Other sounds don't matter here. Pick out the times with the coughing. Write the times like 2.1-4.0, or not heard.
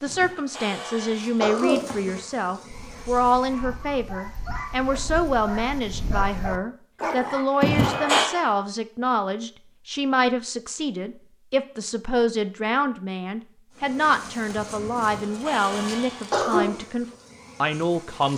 0.1-1.9, 7.6-8.3, 14.9-16.6.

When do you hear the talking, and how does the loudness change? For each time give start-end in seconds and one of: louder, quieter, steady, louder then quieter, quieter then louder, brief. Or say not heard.
0.0-18.3 steady.